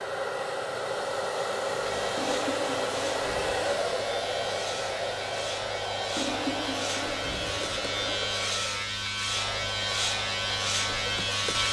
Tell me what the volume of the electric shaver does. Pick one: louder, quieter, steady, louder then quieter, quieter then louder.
louder.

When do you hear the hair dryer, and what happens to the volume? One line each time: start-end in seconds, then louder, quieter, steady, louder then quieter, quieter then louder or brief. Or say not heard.
0.0-11.6 quieter.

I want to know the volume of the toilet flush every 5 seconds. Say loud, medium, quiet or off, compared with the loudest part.
loud, loud, off.